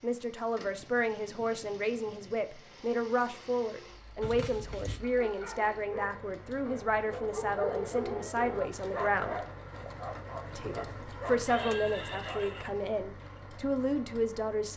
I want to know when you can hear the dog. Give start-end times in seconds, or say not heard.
5.0-12.4.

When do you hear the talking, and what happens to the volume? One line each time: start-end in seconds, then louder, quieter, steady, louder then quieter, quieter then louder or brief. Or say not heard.
0.0-9.4 steady
10.6-14.7 quieter then louder.